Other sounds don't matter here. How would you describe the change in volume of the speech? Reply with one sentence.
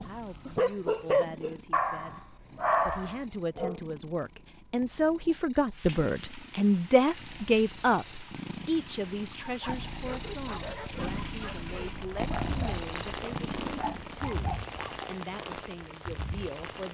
The loudness of the speech goes up, then down.